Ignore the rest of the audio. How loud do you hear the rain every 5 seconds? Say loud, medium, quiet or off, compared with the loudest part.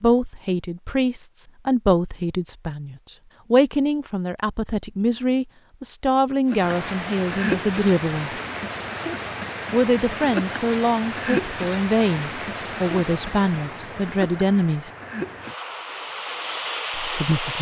off, loud, loud, loud.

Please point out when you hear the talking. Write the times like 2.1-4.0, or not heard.
0.0-8.3, 9.7-14.9, 16.9-17.5.